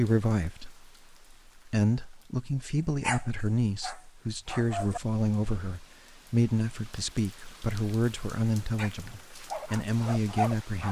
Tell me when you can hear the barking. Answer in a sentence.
The barking can be heard from 3.0 to 5.8 s and from 8.8 to 10.8 s.